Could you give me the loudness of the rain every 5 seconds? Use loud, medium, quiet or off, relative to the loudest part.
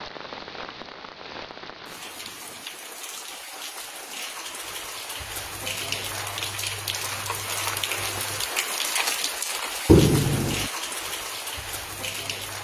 medium, loud, loud.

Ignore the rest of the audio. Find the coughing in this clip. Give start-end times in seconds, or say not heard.
9.8-10.7.